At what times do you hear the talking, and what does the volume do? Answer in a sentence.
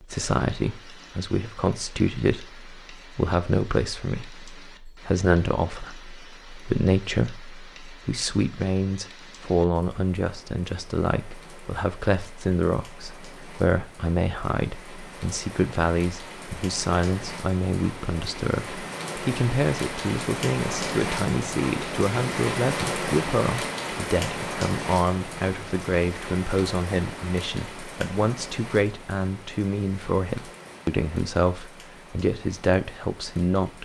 The talking can be heard from 0.0 to 33.8 s, at a steady volume.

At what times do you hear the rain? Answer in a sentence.
The rain can be heard from 0.2 to 33.8 s.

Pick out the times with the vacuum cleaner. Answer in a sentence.
The vacuum cleaner can't be heard in this clip.